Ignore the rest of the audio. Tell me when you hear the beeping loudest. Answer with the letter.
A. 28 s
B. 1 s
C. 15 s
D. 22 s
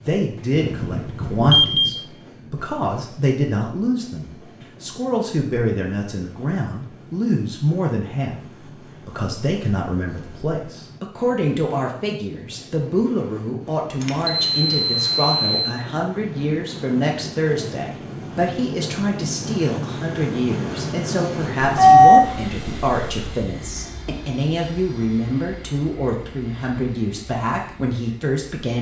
D.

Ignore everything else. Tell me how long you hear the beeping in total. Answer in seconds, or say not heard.
5 s.